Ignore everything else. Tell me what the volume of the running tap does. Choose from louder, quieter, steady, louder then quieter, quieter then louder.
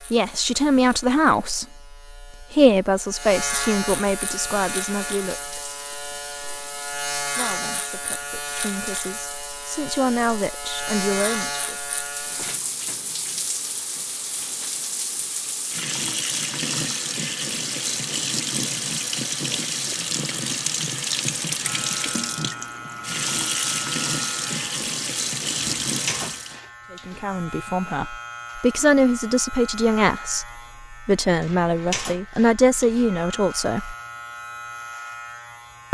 louder.